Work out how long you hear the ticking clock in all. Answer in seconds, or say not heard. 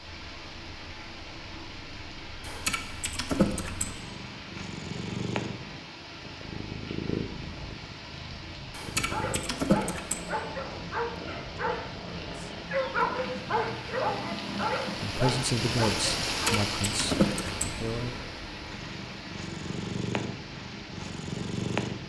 not heard.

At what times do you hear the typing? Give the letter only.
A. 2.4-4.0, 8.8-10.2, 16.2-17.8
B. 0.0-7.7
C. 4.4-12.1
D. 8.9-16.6
A.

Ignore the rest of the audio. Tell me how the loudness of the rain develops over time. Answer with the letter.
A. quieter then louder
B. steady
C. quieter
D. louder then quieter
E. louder
D.